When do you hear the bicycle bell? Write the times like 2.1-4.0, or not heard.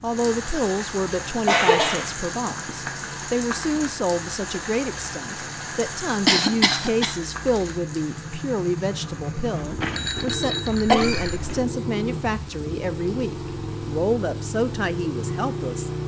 9.8-11.7.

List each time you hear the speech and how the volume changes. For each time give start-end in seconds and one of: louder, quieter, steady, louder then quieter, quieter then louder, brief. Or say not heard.
0.0-15.9 steady.